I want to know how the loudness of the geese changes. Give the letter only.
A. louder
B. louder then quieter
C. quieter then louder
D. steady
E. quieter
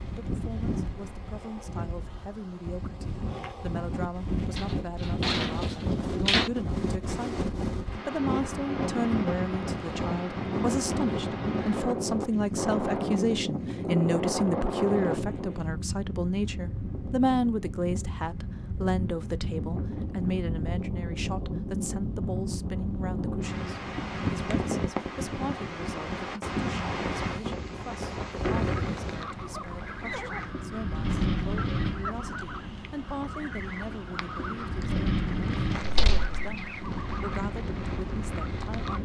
D.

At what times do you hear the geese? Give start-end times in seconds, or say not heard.
27.9-39.0.